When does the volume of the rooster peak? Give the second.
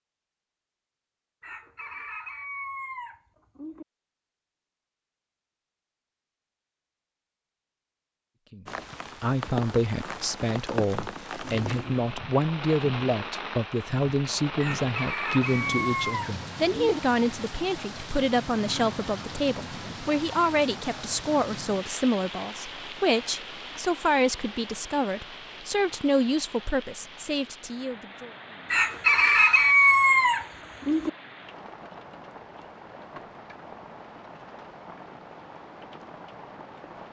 30 s.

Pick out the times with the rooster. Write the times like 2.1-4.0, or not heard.
1.4-3.9, 14.6-17.0, 28.7-31.1.